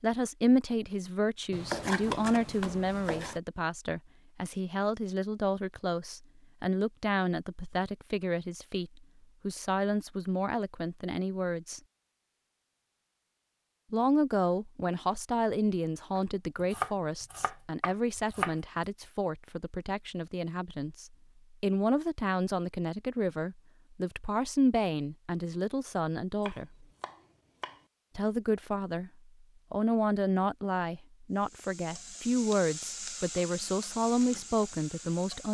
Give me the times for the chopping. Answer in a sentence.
The chopping can be heard from 1.5 to 3.4 s, from 16.1 to 18.6 s and from 26.4 to 27.8 s.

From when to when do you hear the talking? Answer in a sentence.
You can hear the talking from 0.0 to 11.8 s, from 13.9 to 26.9 s, from 28.1 to 29.1 s and from 29.7 to 35.4 s.